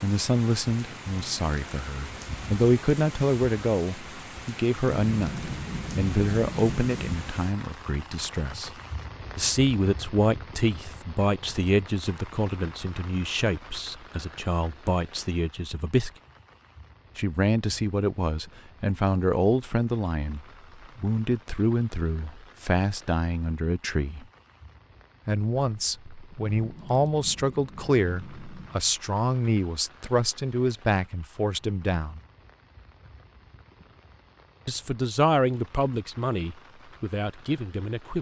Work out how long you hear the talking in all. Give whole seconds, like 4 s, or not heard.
33 s.